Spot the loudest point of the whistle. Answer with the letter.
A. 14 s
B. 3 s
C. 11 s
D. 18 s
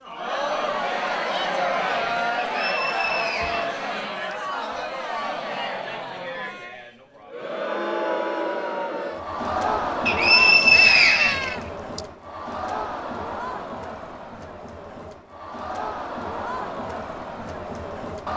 C.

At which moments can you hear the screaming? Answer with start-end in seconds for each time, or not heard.
10.7-11.7.